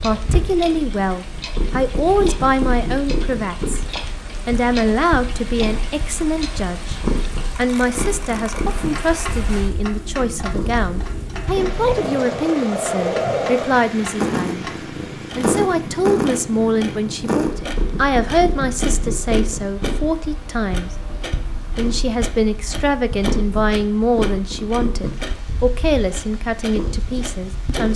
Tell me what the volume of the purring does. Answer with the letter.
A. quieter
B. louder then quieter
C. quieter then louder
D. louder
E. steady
B.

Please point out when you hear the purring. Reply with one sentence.
You can hear the purring from 0.0 to 27.9 s.